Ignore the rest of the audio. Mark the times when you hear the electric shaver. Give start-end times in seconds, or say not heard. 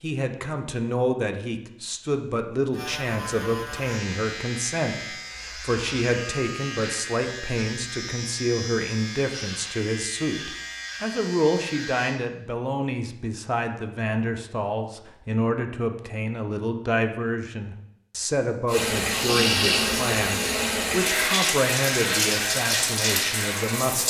2.7-12.2.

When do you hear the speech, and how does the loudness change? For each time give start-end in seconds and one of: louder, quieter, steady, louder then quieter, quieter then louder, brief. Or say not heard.
0.0-24.0 steady.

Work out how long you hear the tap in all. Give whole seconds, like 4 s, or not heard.
5 s.